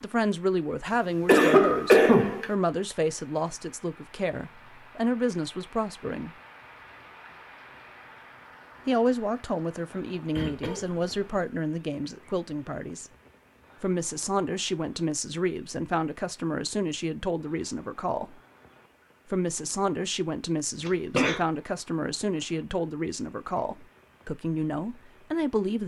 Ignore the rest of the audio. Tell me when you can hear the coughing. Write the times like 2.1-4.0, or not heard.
0.8-2.5, 10.3-11.4, 20.9-21.4.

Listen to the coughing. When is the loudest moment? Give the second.
2 s.